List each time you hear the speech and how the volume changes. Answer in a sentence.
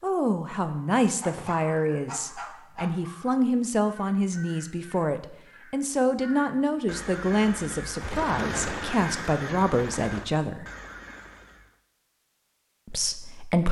The speech can be heard from 0.0 to 10.7 s, at a steady volume; and briefly from 12.8 to 13.6 s.